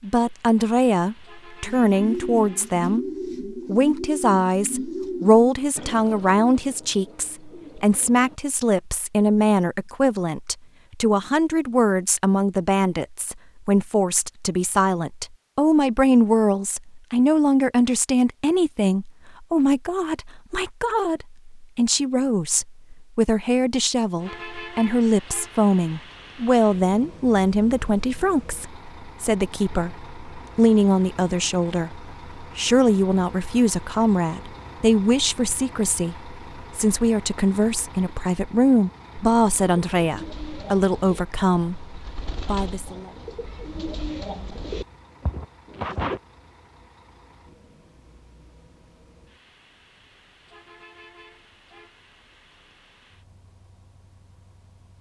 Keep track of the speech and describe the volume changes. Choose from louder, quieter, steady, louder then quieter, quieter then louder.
steady.